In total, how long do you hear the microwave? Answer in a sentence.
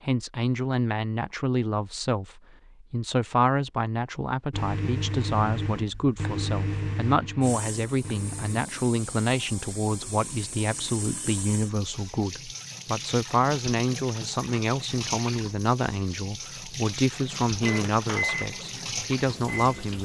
The microwave can be heard for 6 seconds in total.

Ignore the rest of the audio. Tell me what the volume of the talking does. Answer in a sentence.
The loudness of the talking stays about the same.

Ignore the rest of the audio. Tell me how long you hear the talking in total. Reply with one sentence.
The talking can be heard for 20 seconds in total.